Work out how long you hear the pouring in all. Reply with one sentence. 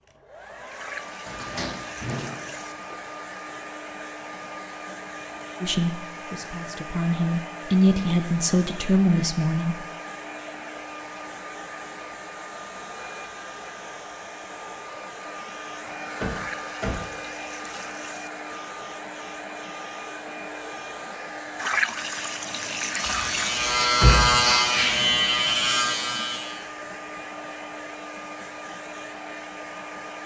You can hear the pouring for 6 seconds altogether.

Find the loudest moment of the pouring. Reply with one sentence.
The volume of the pouring peaks at 22 seconds.